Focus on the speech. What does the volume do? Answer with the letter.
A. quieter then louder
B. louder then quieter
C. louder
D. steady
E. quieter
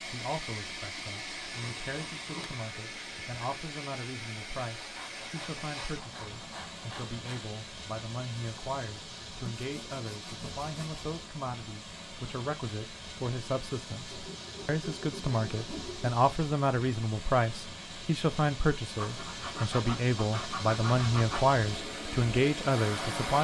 C.